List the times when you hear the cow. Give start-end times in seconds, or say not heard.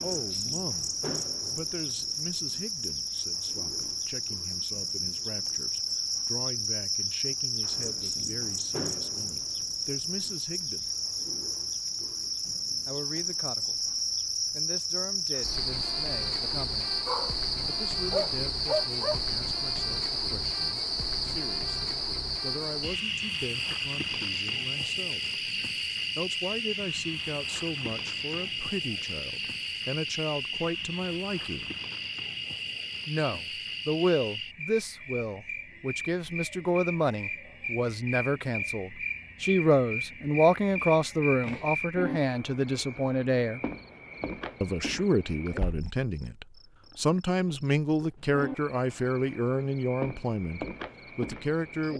not heard.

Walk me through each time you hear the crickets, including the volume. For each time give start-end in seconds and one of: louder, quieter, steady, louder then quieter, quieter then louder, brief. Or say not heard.
0.0-51.9 quieter.